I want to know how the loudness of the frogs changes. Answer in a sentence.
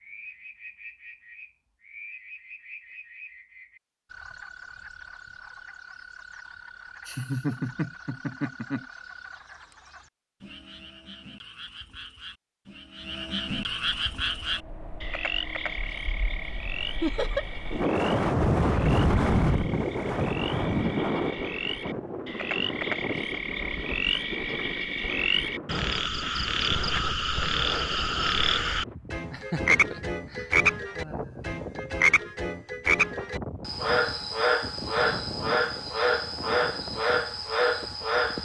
The loudness of the frogs goes up.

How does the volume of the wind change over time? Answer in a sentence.
The volume of the wind goes down.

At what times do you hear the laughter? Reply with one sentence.
You can hear the laughter from 7.0 to 8.8 s, from 17.0 to 17.4 s and from 29.3 to 31.6 s.